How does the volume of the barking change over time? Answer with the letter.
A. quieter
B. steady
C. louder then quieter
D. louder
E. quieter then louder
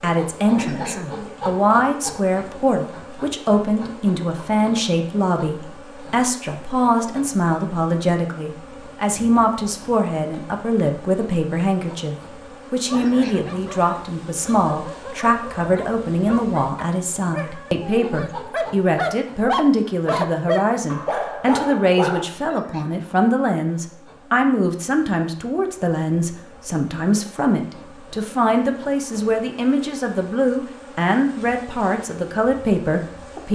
D.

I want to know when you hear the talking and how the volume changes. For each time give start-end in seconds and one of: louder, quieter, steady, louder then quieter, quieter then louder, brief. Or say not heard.
0.0-33.5 steady.